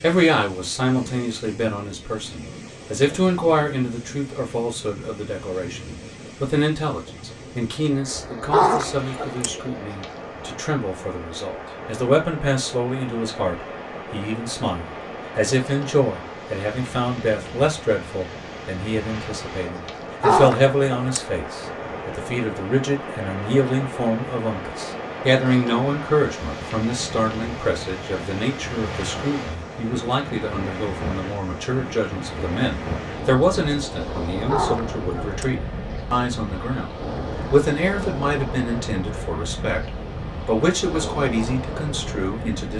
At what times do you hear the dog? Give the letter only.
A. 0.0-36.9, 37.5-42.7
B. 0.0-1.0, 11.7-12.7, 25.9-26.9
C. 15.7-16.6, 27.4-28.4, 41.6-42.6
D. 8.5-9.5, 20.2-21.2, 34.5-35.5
D.